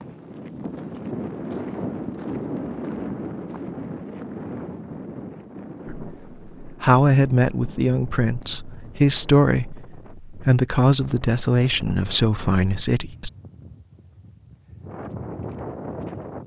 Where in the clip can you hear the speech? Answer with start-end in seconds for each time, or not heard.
5.8-13.3.